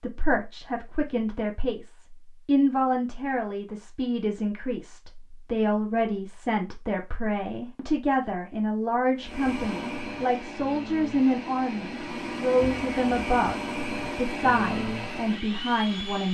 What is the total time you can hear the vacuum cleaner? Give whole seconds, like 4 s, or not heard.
7 s.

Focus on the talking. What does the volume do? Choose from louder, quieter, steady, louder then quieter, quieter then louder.
steady.